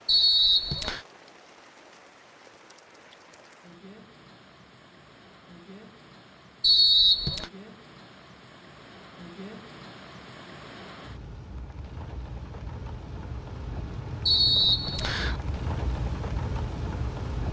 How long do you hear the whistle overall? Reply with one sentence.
You can hear the whistle for 3 seconds altogether.